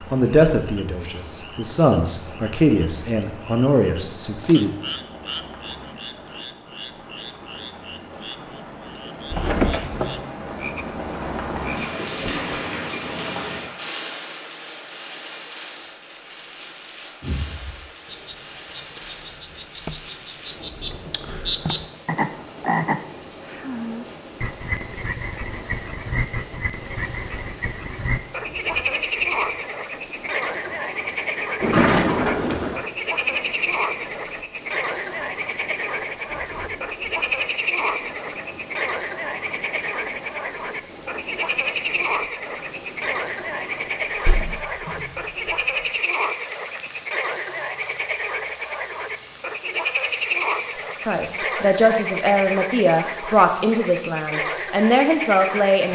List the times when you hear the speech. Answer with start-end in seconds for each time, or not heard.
0.0-4.7, 51.0-55.9.